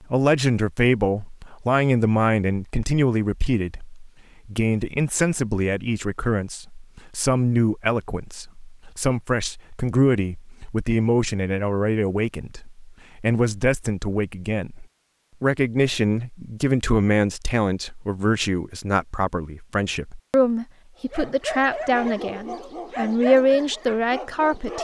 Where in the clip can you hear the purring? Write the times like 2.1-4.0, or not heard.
not heard.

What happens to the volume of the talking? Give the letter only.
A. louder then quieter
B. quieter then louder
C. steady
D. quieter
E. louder
C.